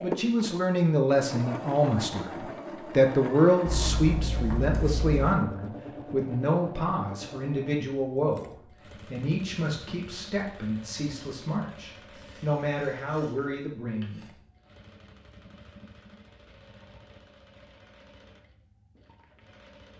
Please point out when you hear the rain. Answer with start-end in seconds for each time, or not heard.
not heard.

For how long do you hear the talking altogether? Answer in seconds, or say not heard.
14 s.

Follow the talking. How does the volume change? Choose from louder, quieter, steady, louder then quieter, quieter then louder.
quieter.